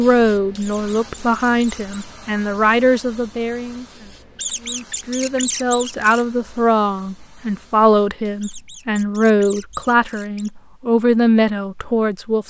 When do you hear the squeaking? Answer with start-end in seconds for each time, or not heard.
0.6-2.1, 4.3-6.2, 8.4-10.5.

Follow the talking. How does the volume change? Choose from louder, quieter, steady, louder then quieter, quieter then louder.
steady.